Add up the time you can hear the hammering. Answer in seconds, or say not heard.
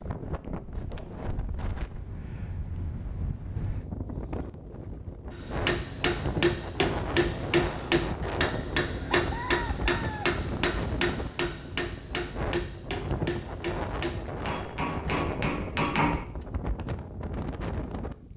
11 s.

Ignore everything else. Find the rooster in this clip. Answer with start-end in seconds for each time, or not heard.
9.1-10.4.